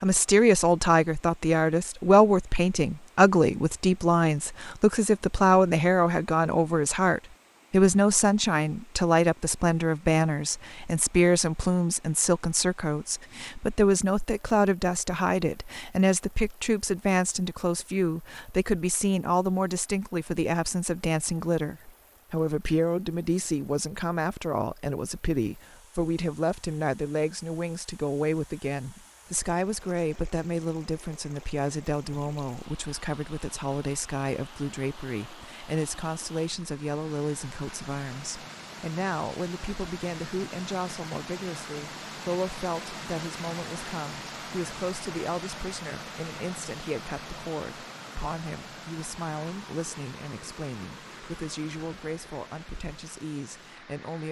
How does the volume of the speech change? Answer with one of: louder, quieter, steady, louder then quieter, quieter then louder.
quieter.